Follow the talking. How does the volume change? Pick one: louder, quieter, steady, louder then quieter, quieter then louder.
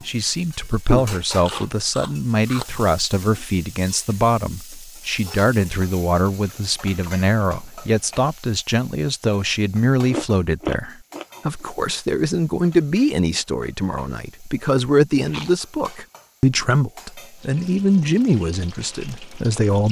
steady.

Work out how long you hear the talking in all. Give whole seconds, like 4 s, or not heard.
20 s.